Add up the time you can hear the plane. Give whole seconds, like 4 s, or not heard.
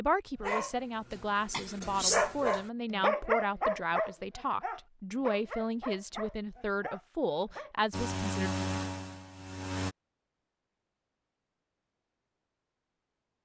2 s.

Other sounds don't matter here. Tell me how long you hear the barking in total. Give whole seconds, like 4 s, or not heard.
7 s.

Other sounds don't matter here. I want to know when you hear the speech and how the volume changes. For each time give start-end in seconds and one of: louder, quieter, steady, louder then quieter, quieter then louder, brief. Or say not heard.
0.0-8.6 steady.